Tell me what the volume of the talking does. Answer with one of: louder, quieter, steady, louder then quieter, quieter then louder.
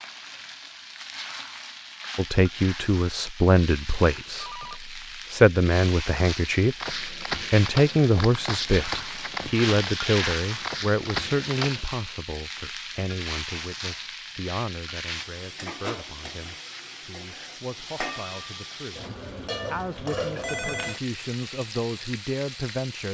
quieter then louder.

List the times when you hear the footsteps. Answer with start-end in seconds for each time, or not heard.
6.8-11.8.